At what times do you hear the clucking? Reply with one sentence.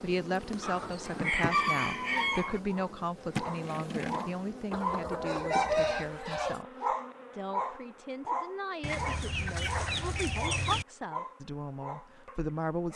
The clucking can be heard from 0.6 to 2.6 s, from 4.7 to 6.6 s and from 8.8 to 10.8 s.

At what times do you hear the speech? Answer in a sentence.
The speech can be heard from 0.0 to 12.9 s.